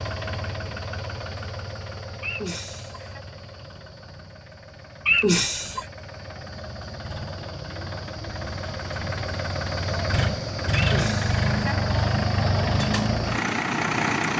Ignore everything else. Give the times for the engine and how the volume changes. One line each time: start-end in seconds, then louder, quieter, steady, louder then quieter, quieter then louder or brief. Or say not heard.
0.0-14.3 quieter then louder.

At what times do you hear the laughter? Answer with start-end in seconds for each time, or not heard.
2.2-3.2, 5.0-5.9, 10.8-11.8.